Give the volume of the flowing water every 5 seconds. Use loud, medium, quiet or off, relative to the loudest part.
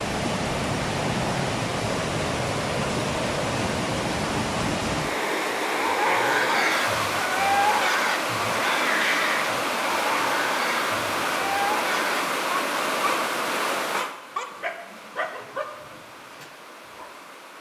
loud, loud, loud, quiet.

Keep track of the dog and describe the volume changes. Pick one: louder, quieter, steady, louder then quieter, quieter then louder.
quieter.